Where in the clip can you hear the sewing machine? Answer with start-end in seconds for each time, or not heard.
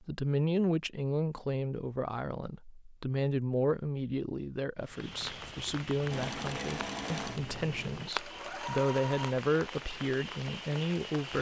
6.1-9.3.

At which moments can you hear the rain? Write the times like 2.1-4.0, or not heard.
4.8-11.3.